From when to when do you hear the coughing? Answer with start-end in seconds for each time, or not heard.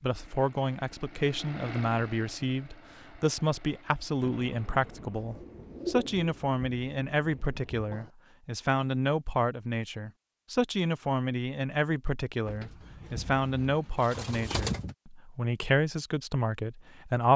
not heard.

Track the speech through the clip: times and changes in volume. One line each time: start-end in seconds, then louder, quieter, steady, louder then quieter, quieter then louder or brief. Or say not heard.
0.0-17.3 steady.